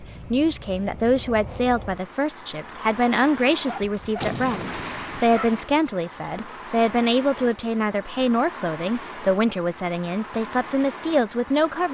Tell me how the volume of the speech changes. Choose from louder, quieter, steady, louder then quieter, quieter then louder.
steady.